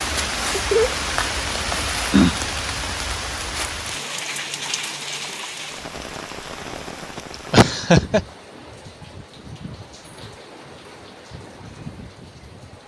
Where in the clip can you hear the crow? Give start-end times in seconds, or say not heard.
not heard.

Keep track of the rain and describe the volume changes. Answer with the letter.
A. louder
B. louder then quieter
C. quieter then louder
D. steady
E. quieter
E.